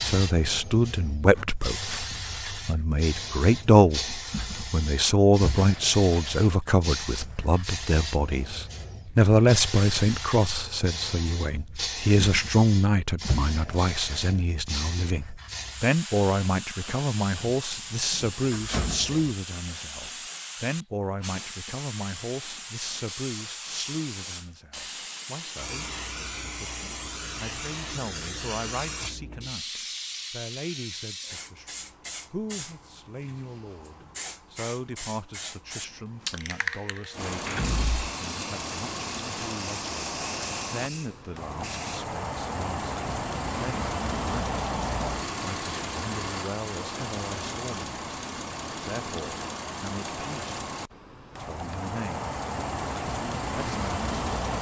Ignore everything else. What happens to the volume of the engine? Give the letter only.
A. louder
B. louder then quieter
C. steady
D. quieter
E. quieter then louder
C.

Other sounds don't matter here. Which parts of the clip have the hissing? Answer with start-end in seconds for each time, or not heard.
0.0-42.0.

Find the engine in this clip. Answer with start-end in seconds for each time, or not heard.
37.1-54.5.